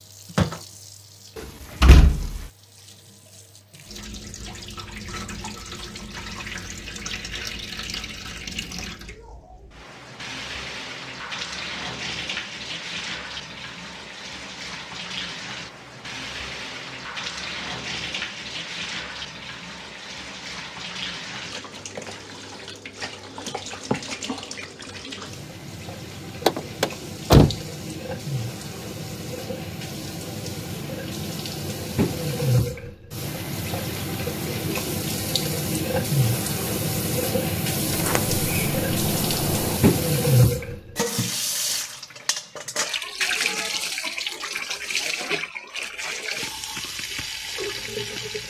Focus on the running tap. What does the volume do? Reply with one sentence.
The volume of the running tap goes up.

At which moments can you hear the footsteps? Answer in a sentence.
The footsteps can't be heard in this clip.